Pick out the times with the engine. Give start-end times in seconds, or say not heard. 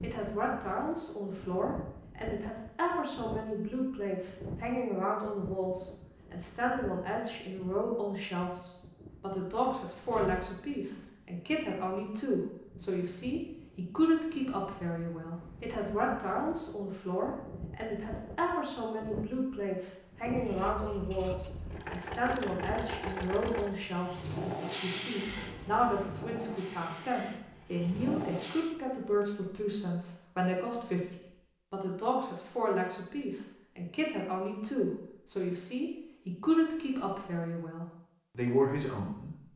20.4-28.8.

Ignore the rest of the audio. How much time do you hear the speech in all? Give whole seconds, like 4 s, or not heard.
39 s.